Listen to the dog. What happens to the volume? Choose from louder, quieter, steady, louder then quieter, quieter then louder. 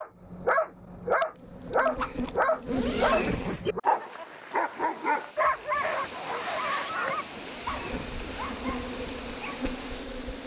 quieter.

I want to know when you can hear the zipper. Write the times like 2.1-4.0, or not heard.
2.6-3.8, 7.3-8.2.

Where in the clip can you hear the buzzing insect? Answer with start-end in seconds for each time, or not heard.
1.4-3.4, 7.4-10.4.